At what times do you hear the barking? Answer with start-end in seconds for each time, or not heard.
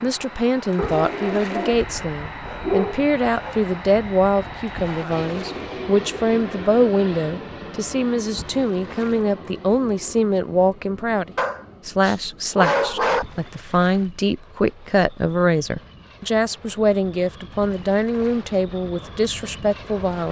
0.8-3.6, 11.3-13.2.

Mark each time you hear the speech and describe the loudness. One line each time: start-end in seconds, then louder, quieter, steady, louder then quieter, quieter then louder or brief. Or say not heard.
0.0-20.2 steady.